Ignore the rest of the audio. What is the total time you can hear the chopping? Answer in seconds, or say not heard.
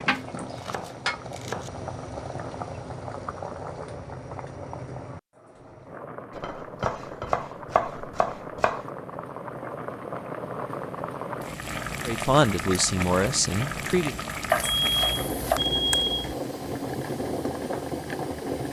5 s.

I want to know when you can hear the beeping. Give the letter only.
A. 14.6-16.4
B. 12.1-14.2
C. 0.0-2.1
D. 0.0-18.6
A.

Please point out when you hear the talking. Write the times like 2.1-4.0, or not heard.
12.1-14.2.